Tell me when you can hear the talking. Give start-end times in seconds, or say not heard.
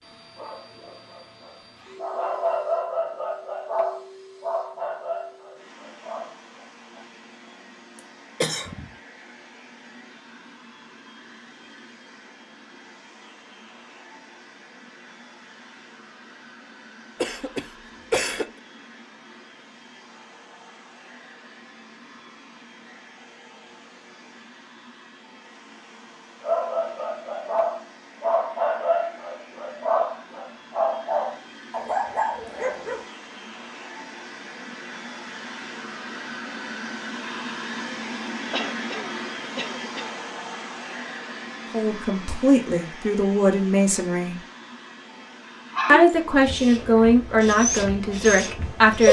41.7-44.4, 45.9-49.0.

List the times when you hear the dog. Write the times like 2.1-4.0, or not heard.
0.3-7.0, 26.4-33.0, 45.7-49.0.